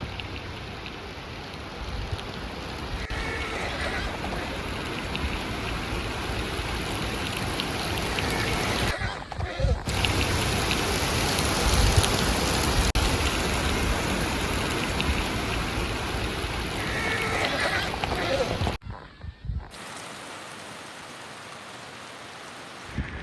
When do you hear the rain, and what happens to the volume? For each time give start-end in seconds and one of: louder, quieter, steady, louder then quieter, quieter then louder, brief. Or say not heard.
0.0-23.1 louder then quieter.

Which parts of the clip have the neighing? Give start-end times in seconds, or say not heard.
3.0-4.7, 8.2-9.8, 16.8-18.8.